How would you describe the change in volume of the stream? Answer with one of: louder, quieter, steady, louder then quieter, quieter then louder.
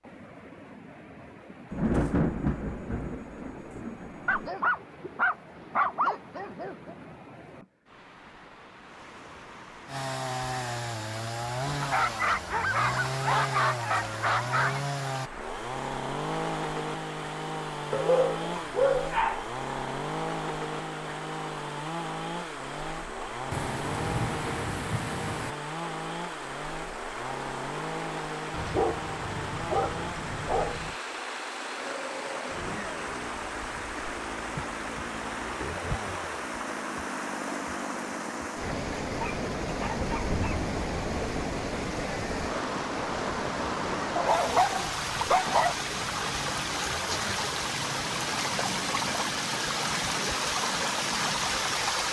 louder.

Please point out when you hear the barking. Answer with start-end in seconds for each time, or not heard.
4.2-7.0, 11.8-14.8, 17.9-19.4, 28.5-30.9, 39.2-40.6, 44.1-45.8.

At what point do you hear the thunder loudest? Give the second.
2 s.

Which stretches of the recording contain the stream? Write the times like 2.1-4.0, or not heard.
0.0-52.0.